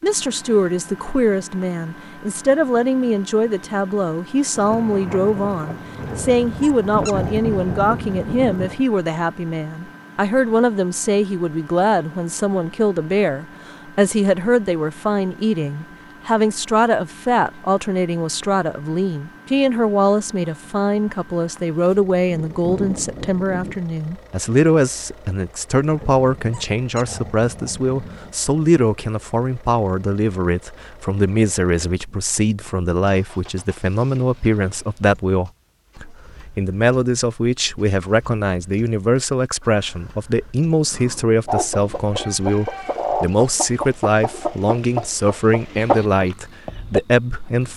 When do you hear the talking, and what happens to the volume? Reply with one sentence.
You can hear the talking from 0.0 to 47.7 s, at a steady volume.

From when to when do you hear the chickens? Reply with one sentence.
You can hear the chickens from 41.5 to 47.0 s.